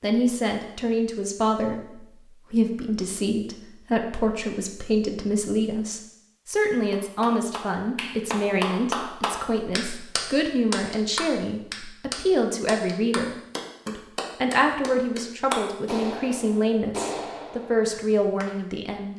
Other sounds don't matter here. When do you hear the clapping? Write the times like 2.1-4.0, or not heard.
6.9-18.5.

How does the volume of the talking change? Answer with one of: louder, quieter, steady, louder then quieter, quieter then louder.
steady.